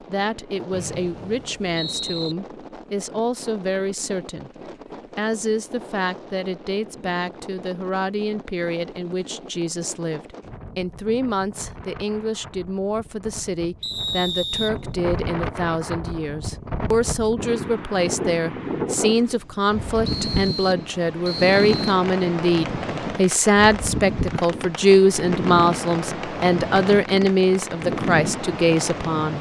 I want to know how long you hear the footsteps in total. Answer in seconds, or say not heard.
not heard.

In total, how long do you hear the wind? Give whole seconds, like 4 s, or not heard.
29 s.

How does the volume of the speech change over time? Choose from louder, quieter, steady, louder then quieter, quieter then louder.
louder.